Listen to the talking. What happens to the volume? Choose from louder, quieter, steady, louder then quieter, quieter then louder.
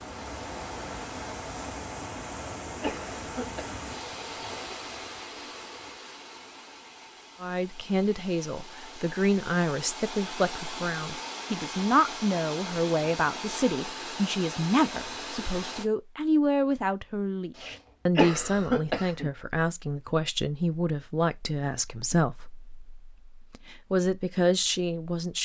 steady.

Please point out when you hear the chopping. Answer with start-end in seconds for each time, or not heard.
not heard.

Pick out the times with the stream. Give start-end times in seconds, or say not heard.
0.0-15.8.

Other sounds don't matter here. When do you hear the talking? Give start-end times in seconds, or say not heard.
7.4-25.4.